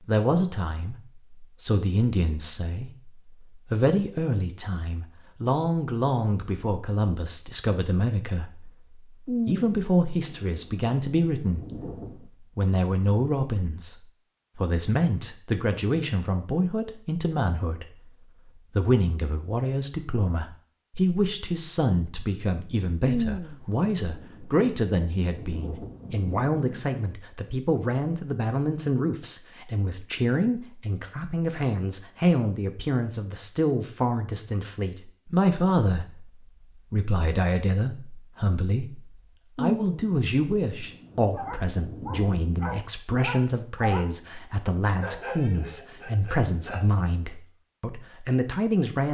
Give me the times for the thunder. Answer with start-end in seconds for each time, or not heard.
9.2-12.2, 23.1-26.9, 39.5-42.4.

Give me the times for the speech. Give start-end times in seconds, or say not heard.
0.1-11.8, 12.6-13.9, 14.6-17.9, 18.8-36.3, 36.9-49.1.